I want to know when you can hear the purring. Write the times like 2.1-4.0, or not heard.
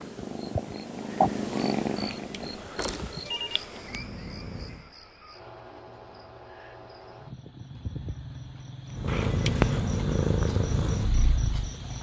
0.0-4.9, 8.9-11.9.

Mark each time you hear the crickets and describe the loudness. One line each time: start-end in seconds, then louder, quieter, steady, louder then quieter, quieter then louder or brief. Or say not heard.
0.0-11.9 quieter then louder.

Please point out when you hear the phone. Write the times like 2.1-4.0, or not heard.
1.9-3.6, 9.1-9.8.